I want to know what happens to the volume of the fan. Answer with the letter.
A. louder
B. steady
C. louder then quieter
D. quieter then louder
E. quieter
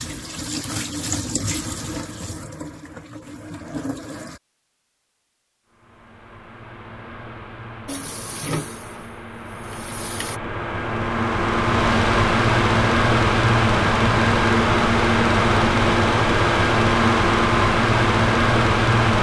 A.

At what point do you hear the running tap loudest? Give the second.
1 s.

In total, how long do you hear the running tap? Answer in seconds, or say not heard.
7 s.